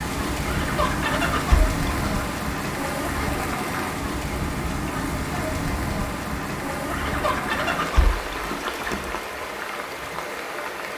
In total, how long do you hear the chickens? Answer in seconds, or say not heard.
4 s.